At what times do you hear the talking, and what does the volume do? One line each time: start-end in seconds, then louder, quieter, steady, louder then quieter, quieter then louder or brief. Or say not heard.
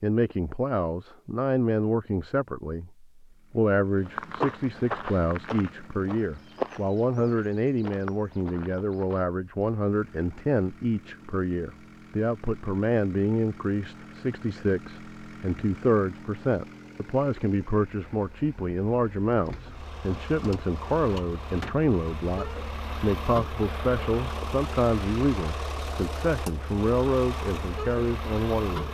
0.0-28.8 steady.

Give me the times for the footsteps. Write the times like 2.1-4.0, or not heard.
4.0-9.2.